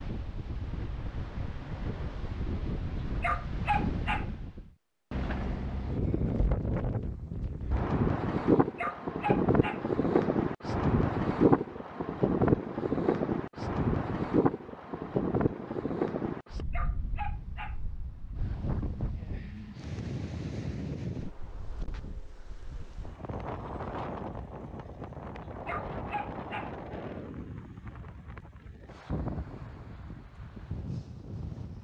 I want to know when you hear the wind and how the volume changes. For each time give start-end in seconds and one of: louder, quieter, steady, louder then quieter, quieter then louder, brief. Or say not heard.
0.0-31.7 louder then quieter.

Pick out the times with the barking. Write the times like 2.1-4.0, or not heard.
3.0-4.2, 8.6-9.8, 16.6-17.8, 25.5-26.7.